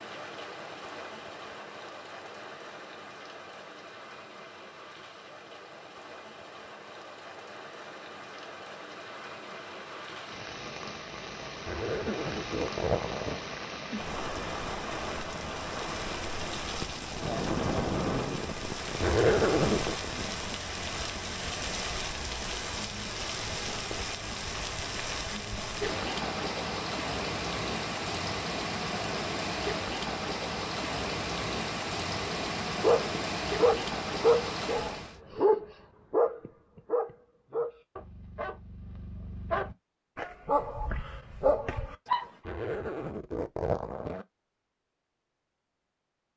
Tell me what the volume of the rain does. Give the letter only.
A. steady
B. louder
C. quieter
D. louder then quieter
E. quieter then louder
B.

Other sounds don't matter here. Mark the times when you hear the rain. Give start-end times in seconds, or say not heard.
0.0-35.2.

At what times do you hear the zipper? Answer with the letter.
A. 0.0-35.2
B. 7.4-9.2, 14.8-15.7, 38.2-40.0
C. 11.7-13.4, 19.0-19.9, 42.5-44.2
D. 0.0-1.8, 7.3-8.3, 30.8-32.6
C.